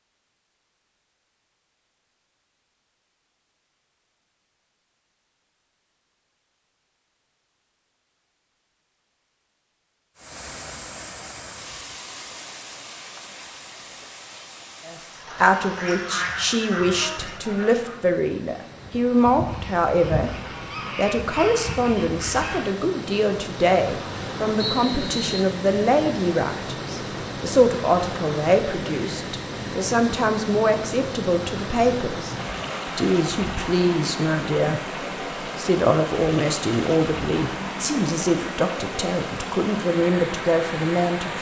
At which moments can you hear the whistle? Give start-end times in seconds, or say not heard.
24.6-25.4.